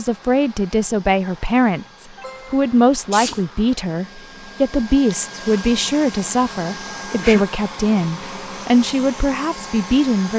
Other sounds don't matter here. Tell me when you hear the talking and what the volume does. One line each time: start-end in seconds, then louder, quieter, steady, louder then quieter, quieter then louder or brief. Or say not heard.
0.0-10.3 steady.